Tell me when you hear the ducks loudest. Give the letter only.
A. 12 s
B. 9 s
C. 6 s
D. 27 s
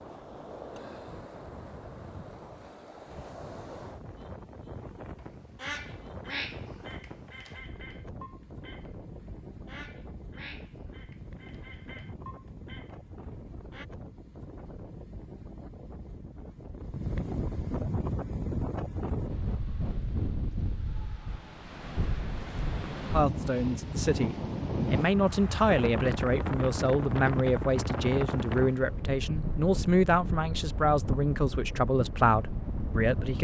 C.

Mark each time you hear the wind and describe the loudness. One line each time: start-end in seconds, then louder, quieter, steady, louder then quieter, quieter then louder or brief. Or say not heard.
0.0-33.3 louder.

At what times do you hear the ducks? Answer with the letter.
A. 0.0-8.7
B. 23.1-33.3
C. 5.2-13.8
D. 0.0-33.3
C.